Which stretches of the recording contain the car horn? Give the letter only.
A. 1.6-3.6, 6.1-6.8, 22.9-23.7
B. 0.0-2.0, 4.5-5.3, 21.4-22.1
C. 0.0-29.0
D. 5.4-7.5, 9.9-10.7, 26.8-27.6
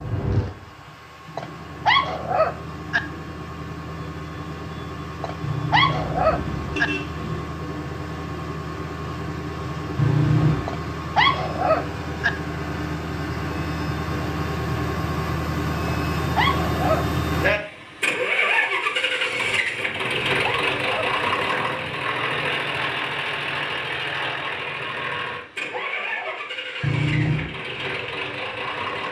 D.